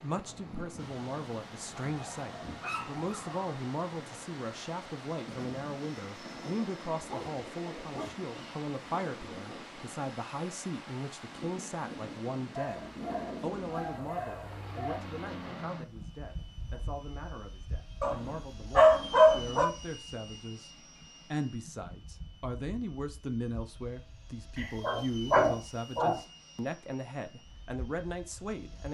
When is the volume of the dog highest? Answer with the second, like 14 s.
19 s.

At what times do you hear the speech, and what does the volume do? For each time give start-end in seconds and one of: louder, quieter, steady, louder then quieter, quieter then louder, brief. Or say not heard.
0.0-28.8 steady.